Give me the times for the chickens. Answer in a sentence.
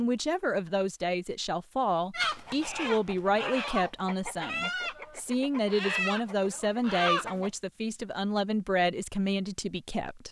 You can hear the chickens from 2.1 to 7.5 s.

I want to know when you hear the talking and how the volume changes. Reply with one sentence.
The talking can be heard from 0.0 to 10.2 s, at a steady volume.